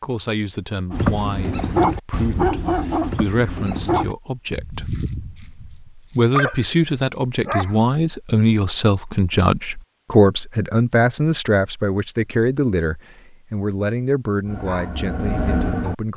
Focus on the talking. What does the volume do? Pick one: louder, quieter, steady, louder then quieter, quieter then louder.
louder then quieter.